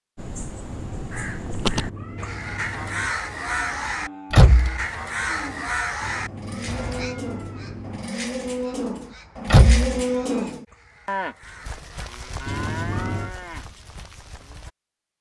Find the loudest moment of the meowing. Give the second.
13 s.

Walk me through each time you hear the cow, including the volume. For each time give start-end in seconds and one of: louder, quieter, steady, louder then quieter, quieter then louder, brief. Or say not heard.
3.2-14.7 louder then quieter.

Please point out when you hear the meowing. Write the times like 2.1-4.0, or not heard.
1.7-3.2, 6.0-8.2, 12.4-13.3.